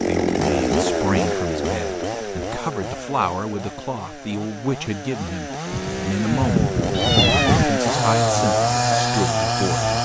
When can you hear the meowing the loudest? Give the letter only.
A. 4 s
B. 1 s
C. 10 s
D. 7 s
D.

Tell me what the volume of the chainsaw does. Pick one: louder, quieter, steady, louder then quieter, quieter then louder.
quieter then louder.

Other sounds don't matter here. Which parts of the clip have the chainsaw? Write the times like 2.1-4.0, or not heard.
0.0-9.9.